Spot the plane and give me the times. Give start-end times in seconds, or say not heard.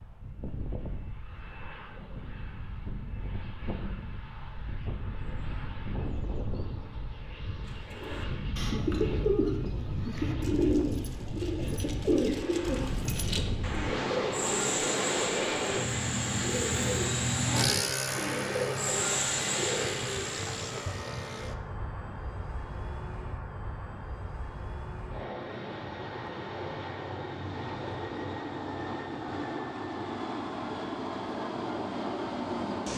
0.0-32.9.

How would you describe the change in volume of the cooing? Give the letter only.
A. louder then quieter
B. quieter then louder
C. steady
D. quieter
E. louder
C.